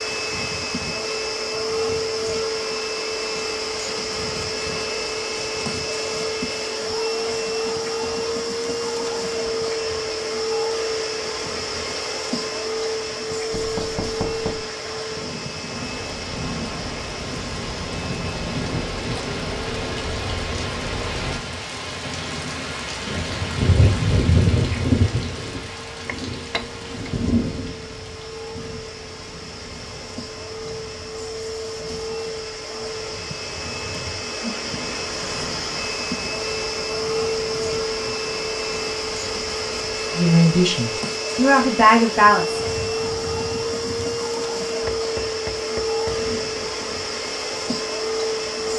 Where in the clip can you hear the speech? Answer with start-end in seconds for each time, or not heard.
40.1-42.6.